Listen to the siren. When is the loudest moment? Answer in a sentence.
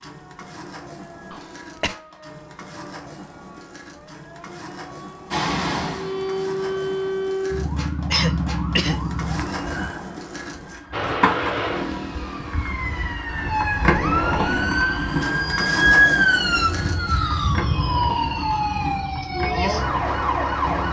The loudest moment of the siren is at 16 seconds.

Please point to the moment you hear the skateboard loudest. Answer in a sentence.
The loudest moment of the skateboard is at 14 seconds.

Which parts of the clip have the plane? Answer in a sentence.
You can hear the plane from 5.3 to 7.2 s and from 10.9 to 13.2 s.